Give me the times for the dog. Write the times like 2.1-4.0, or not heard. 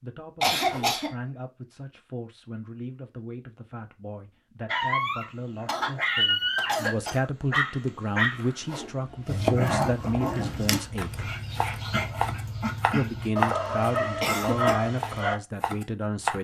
4.7-15.3.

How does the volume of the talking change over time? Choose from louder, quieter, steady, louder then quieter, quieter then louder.
louder.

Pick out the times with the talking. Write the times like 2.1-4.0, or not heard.
0.0-11.3, 12.9-16.3.